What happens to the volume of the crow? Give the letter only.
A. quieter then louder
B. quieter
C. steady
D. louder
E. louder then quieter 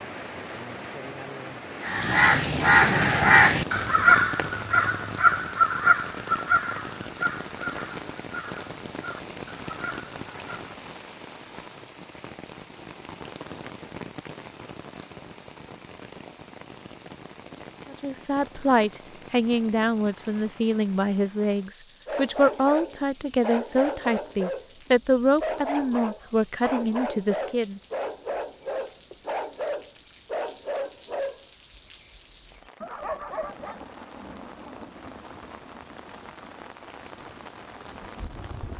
B.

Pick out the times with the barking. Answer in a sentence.
You can hear the barking from 22.1 to 33.8 s.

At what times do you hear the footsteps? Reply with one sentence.
The footsteps can't be heard in this clip.